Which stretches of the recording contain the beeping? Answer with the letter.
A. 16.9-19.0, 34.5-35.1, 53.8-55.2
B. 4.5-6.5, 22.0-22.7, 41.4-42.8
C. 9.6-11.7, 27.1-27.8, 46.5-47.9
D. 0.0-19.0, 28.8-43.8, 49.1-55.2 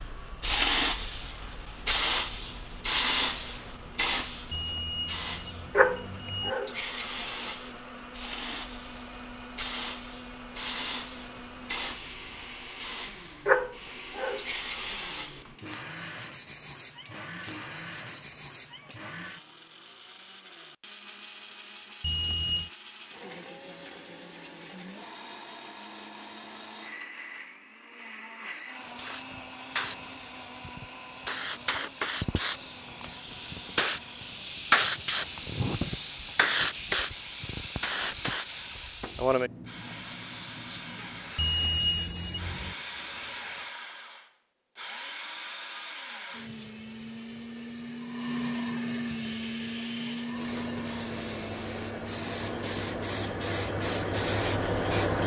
B.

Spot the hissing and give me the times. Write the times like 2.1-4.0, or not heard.
0.0-19.0, 28.8-43.8, 49.1-55.2.